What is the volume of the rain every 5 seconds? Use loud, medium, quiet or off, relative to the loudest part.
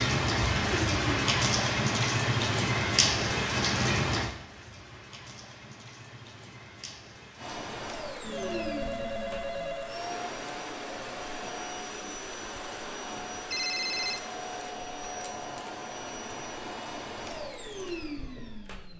loud, quiet, quiet, off.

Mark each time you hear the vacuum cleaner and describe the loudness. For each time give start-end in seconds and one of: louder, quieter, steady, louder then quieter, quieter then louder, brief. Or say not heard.
7.3-18.9 steady.